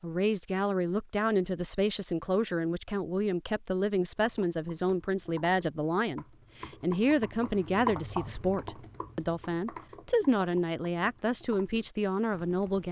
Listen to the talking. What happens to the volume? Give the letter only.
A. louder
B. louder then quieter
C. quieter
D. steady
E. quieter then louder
D.